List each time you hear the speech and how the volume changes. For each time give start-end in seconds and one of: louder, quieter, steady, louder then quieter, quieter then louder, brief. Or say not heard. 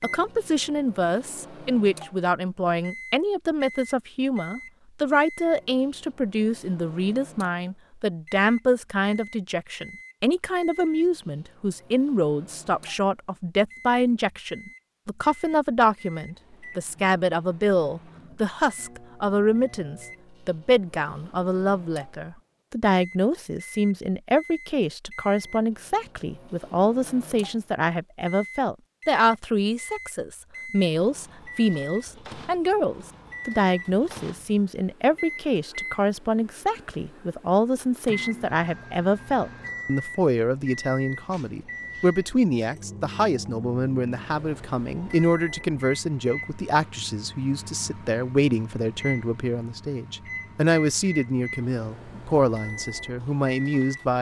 0.0-54.1 steady.